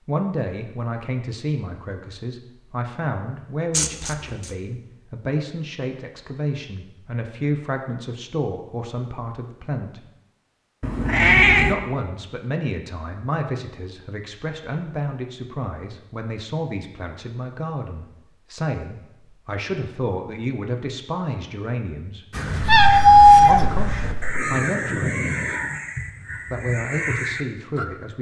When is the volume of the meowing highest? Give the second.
23 s.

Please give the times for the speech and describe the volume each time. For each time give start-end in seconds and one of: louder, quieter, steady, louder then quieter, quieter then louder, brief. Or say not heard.
0.1-10.1 steady
11.7-22.4 steady
23.4-25.4 brief
26.5-28.1 brief.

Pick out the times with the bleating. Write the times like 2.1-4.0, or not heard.
not heard.